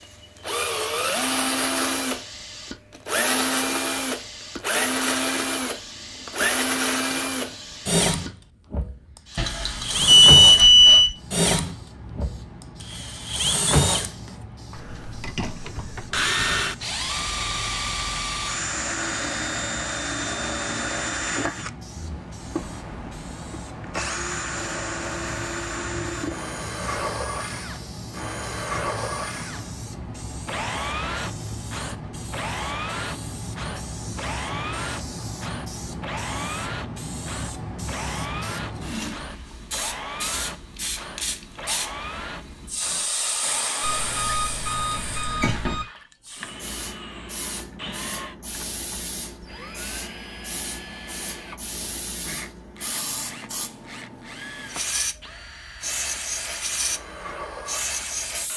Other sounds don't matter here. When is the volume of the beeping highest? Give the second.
10 s.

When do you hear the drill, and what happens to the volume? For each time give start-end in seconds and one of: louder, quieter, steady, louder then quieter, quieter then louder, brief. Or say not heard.
0.0-58.5 quieter.